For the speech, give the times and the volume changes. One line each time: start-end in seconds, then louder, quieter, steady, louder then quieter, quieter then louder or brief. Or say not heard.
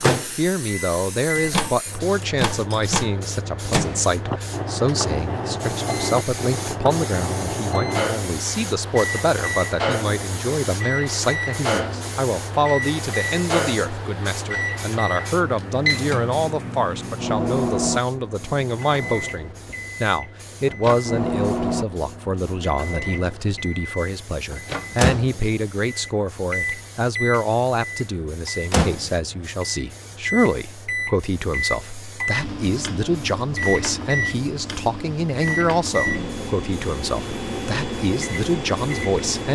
0.0-39.4 steady.